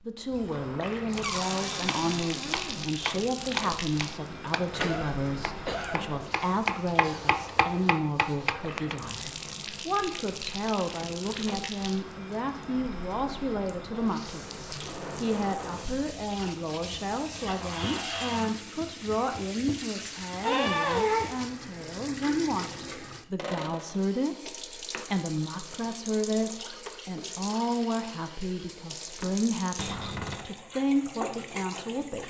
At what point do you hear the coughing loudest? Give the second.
21 s.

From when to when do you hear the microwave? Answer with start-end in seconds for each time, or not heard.
not heard.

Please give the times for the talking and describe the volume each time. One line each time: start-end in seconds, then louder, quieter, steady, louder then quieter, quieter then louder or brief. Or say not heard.
0.0-32.2 steady.